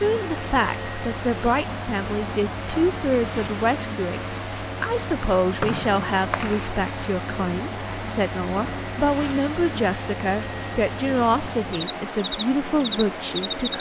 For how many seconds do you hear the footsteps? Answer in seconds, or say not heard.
not heard.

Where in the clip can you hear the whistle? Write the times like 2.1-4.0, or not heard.
5.6-6.7.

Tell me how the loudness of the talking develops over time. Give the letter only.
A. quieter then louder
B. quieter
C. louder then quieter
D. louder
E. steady
E.